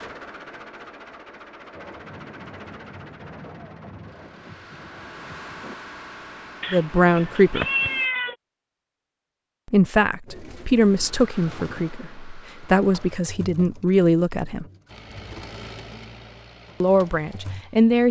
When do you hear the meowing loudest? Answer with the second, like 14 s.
8 s.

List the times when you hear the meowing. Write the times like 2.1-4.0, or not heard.
6.6-8.3.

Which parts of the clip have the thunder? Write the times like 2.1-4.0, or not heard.
1.8-5.8.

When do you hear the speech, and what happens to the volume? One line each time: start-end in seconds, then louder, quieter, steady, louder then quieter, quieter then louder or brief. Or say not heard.
6.7-7.7 brief
9.7-14.7 quieter then louder
16.8-18.0 brief.